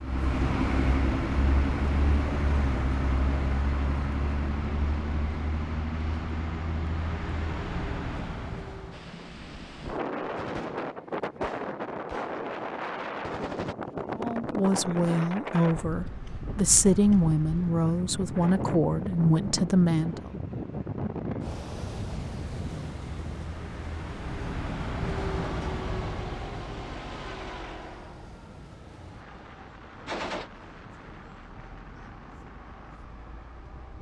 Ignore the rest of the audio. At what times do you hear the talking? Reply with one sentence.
You can hear the talking from 14.2 to 20.3 s.